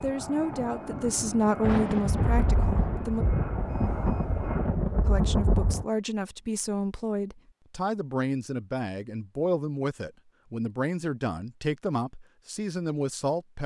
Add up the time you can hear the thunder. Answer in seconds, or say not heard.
4 s.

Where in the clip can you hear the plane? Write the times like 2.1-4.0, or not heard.
0.0-4.8.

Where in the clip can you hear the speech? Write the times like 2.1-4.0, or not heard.
0.0-3.2, 5.0-13.6.